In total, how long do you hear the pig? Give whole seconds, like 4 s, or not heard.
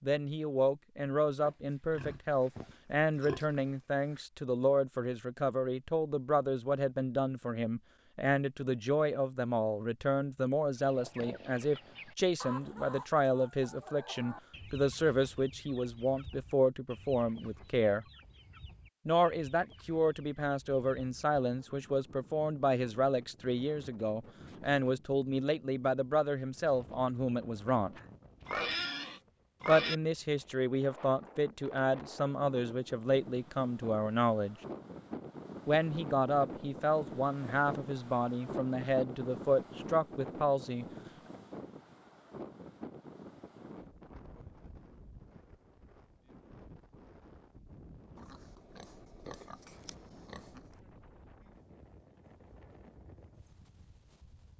7 s.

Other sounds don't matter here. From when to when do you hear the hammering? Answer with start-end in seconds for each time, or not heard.
not heard.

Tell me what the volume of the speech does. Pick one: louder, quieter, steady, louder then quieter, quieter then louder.
steady.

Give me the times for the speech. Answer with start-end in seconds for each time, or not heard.
0.0-18.1, 19.1-27.9, 29.6-34.5, 35.6-40.9.